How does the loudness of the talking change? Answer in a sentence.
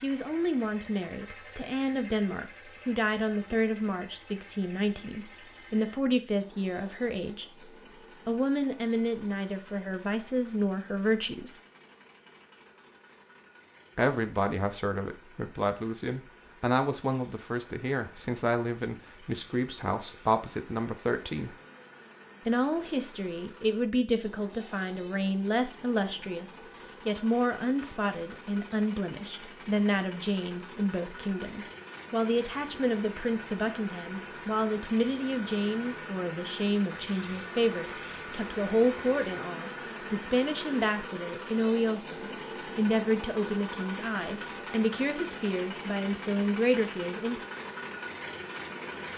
The volume of the talking stays about the same.